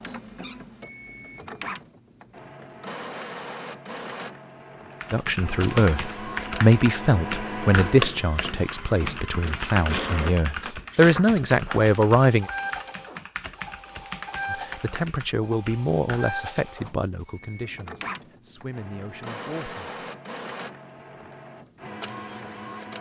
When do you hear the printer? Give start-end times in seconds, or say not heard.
0.0-22.9.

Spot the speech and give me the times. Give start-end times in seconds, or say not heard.
5.1-12.5, 14.5-19.9.